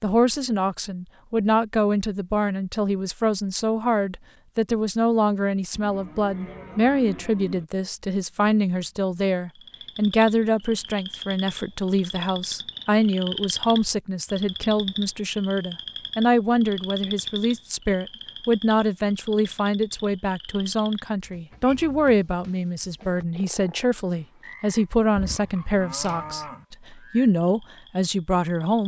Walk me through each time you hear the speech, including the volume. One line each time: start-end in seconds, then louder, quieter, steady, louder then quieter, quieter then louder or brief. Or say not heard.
0.0-28.8 steady.